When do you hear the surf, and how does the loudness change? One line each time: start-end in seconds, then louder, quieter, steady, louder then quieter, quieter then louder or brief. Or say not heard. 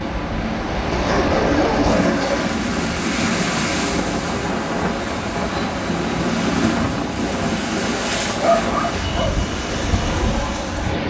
0.0-11.0 steady.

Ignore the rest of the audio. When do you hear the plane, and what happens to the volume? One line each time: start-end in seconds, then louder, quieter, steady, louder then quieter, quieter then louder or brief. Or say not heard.
0.0-11.0 steady.